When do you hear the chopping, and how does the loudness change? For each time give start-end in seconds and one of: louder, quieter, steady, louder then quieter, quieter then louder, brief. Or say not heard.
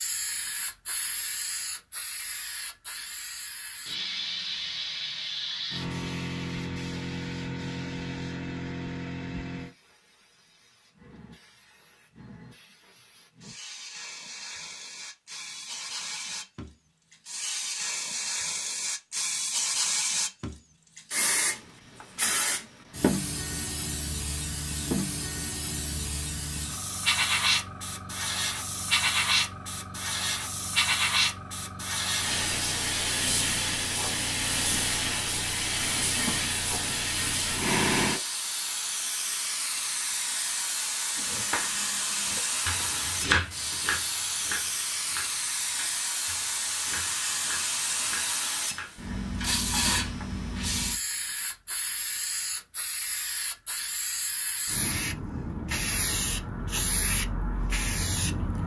41.1-50.5 louder then quieter.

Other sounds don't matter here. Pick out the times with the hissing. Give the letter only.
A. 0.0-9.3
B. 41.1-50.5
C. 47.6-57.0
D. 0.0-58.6
D.